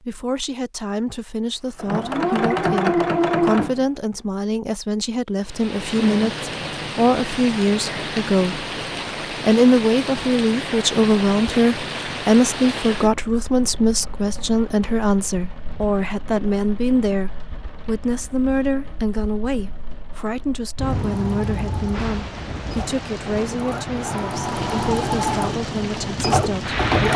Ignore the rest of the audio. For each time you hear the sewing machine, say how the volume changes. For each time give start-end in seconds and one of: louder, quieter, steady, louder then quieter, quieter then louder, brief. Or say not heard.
1.8-3.9 brief
20.9-27.1 louder.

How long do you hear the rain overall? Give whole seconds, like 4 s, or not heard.
22 s.